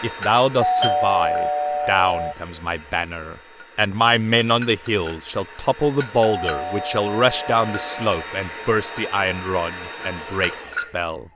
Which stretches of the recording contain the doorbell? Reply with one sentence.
The doorbell can be heard from 0.6 to 2.4 s and from 6.2 to 8.1 s.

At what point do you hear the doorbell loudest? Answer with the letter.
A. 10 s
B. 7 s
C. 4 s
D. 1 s
D.